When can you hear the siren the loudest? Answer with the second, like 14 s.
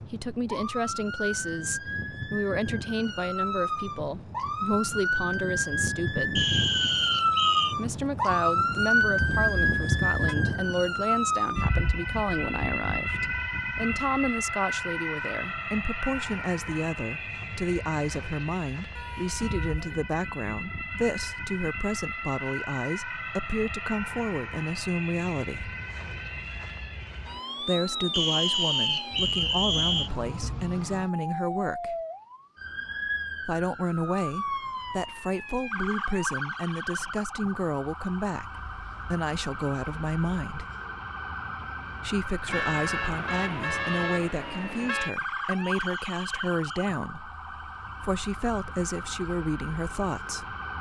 9 s.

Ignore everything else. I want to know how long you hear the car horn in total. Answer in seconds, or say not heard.
5 s.